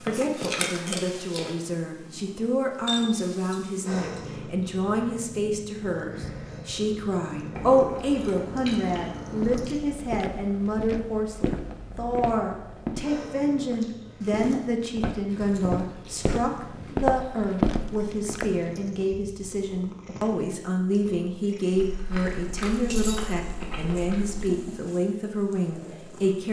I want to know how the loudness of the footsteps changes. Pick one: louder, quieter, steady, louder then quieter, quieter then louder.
quieter then louder.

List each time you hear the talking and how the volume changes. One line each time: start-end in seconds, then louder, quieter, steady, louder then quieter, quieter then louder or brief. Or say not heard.
0.0-26.4 steady.